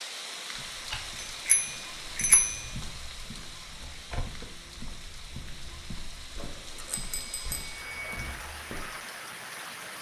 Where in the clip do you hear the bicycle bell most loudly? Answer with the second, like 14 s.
2 s.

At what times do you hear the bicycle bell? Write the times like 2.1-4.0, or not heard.
1.1-2.7, 6.3-8.3.